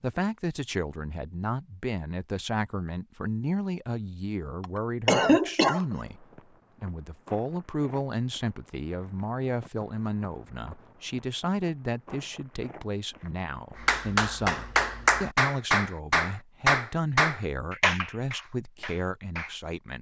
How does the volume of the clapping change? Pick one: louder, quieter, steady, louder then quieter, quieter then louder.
quieter.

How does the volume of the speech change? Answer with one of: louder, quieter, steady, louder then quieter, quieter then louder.
steady.